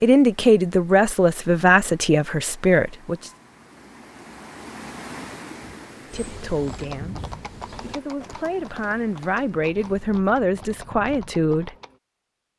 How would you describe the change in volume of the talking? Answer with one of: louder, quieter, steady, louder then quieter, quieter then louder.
quieter then louder.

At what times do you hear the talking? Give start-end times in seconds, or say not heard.
0.0-3.3, 6.1-11.8.